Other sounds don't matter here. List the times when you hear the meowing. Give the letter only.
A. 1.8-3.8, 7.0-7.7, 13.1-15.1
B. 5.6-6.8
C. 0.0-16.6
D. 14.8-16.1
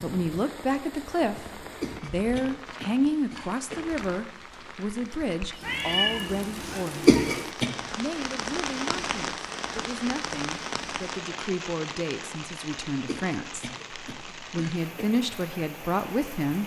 B.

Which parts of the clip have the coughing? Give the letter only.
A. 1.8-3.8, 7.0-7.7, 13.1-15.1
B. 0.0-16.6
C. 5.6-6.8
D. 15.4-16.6
A.